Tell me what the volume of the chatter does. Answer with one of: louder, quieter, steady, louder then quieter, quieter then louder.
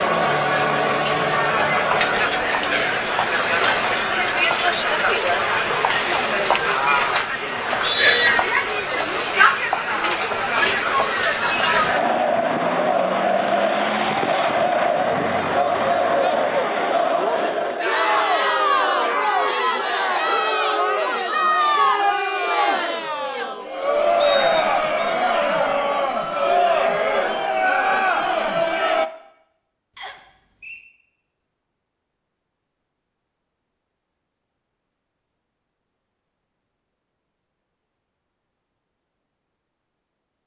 steady.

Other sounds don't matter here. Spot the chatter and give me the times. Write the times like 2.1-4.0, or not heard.
0.0-29.1.